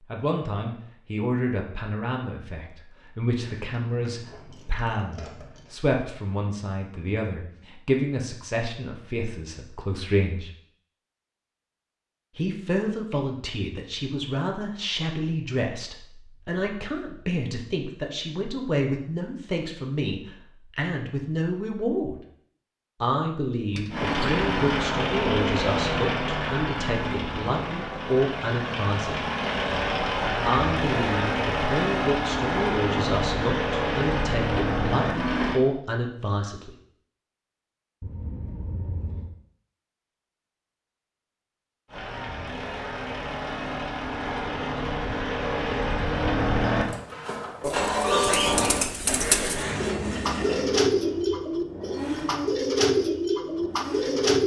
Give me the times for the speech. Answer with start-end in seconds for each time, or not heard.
0.1-10.5, 12.3-22.2, 23.0-29.3, 30.4-36.8.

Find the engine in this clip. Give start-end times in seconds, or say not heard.
23.9-35.6, 41.9-54.4.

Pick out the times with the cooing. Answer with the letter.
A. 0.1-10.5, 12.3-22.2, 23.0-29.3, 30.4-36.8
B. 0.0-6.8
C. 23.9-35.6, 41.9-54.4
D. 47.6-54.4
D.